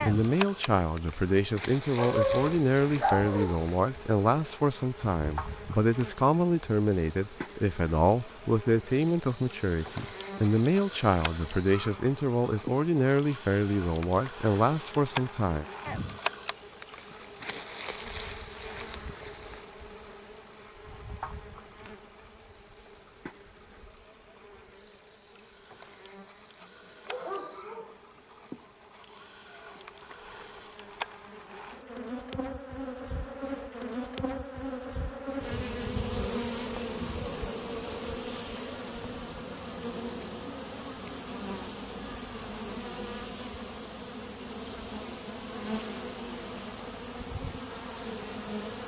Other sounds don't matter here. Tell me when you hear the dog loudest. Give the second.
2 s.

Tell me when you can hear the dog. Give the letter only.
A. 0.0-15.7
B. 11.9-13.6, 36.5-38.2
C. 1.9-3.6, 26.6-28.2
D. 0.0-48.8
C.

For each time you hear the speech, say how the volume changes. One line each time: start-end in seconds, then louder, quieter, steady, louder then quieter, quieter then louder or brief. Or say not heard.
0.0-15.7 steady.